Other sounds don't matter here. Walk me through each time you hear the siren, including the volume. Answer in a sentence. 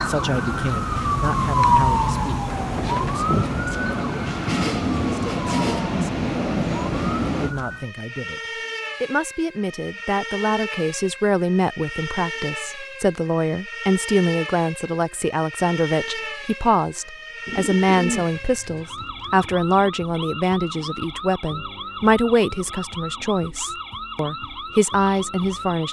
You can hear the siren from 0.0 to 25.8 s, getting quieter.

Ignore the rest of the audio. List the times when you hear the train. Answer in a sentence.
The train can be heard from 0.0 to 7.5 s.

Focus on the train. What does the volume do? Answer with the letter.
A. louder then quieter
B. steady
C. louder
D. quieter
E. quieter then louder
C.